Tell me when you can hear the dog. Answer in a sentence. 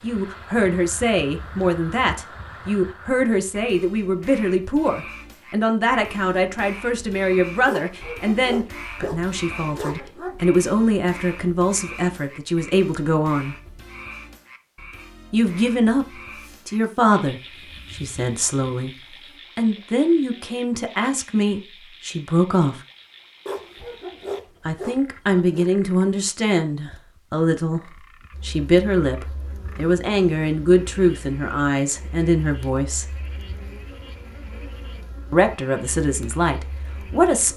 The dog can be heard from 7.7 to 10.4 s and from 23.4 to 25.7 s.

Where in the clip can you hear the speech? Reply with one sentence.
You can hear the speech from 0.0 to 13.6 s, from 15.3 to 18.9 s, from 19.6 to 22.8 s, from 24.6 to 33.0 s and from 35.3 to 37.5 s.